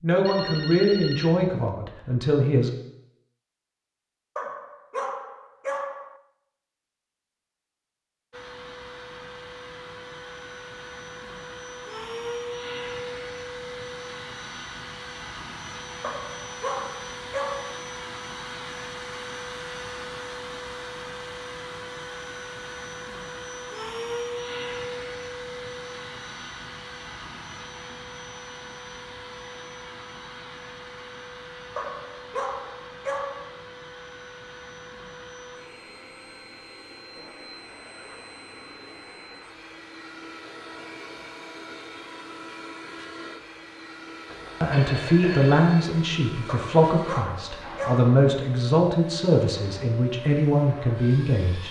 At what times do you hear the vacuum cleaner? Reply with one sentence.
The vacuum cleaner can be heard from 8.3 to 51.6 s.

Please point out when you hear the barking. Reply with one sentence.
The barking can be heard from 4.3 to 6.2 s, from 16.0 to 17.8 s, from 31.8 to 33.6 s and from 46.5 to 48.1 s.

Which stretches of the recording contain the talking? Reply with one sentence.
You can hear the talking from 0.0 to 2.7 s and from 44.6 to 51.6 s.